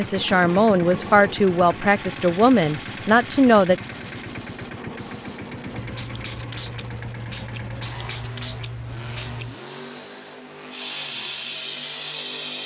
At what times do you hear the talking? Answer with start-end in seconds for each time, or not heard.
0.0-3.8.